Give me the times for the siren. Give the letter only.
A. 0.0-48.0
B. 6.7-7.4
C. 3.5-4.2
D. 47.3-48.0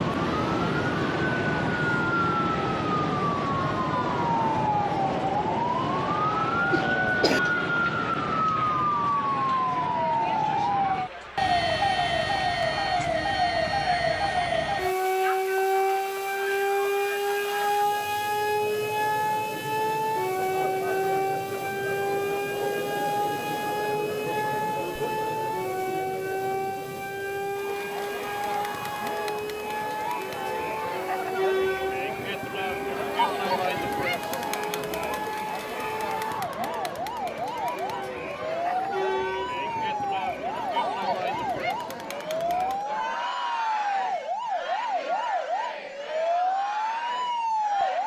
A.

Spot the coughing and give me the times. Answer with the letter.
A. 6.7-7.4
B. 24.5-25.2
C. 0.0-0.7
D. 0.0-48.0
A.